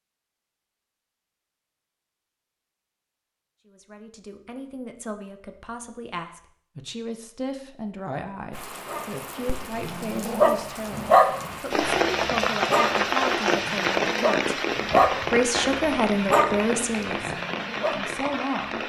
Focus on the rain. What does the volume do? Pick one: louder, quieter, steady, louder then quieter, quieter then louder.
louder then quieter.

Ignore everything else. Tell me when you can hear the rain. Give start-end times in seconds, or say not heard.
8.5-18.8.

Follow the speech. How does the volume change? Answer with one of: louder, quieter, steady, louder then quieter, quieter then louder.
louder.